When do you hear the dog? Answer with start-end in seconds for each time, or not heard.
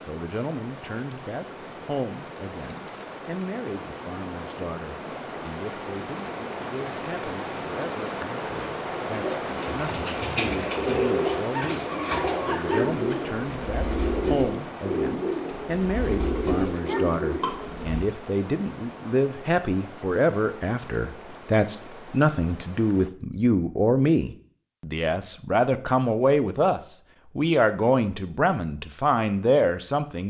11.6-13.2, 16.9-17.6.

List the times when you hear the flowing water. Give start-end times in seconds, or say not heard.
0.0-23.1.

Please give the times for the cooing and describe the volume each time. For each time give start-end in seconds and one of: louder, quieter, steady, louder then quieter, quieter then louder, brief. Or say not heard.
9.2-18.1 steady.